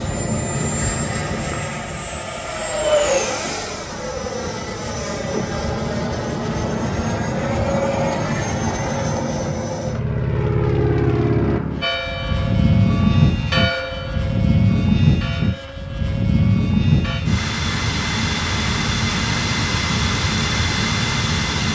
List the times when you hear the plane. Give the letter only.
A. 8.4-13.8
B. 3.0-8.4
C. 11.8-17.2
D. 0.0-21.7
D.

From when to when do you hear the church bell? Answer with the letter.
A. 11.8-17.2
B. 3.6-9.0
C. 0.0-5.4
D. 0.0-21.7
A.